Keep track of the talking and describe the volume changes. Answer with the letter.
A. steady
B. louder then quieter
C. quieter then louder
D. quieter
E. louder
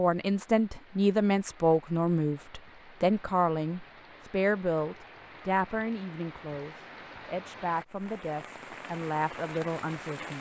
D.